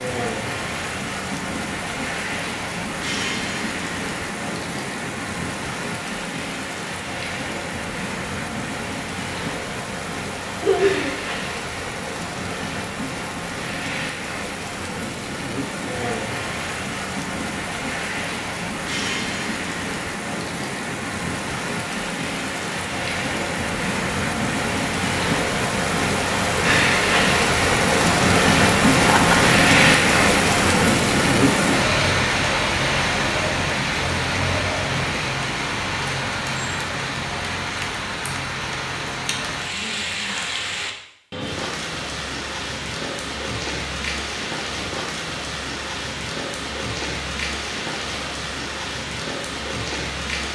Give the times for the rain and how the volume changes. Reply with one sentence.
You can hear the rain from 0.0 to 50.5 s, getting louder then quieter.